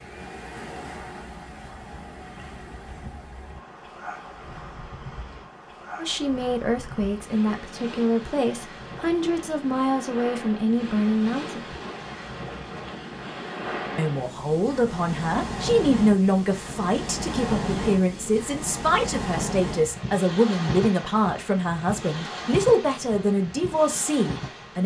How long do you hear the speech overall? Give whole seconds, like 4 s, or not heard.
17 s.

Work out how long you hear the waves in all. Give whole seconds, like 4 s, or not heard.
25 s.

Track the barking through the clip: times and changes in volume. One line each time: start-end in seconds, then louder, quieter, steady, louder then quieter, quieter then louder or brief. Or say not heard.
not heard.